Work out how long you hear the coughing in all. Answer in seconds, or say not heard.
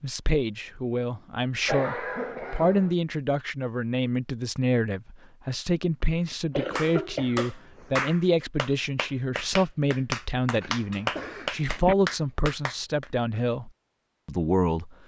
4 s.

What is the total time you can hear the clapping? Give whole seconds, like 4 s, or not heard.
6 s.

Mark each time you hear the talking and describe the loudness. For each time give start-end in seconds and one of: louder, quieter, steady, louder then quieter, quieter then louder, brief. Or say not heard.
0.0-14.9 steady.